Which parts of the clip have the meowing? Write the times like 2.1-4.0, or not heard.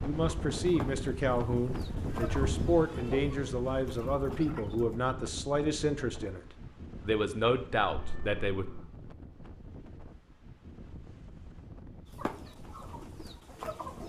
2.1-2.9, 7.8-8.8.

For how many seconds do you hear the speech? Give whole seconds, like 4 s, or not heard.
8 s.